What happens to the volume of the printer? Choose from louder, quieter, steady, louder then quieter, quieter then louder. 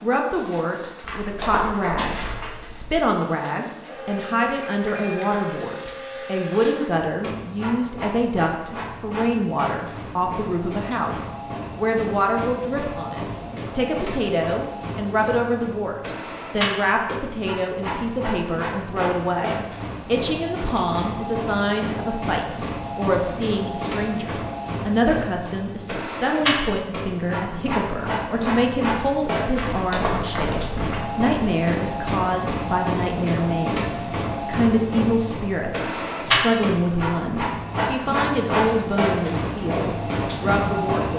louder.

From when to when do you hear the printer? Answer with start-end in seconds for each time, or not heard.
0.0-41.1.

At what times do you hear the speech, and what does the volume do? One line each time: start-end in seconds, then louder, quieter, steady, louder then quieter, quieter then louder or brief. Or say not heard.
0.0-41.1 steady.